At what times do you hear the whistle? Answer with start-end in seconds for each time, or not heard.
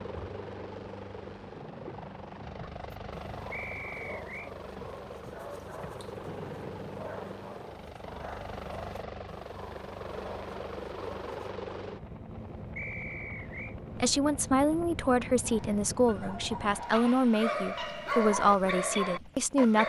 3.5-4.5, 12.8-13.8.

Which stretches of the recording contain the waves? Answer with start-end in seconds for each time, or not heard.
not heard.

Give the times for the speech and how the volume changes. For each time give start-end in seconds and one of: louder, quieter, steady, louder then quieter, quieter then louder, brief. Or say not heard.
14.0-19.8 steady.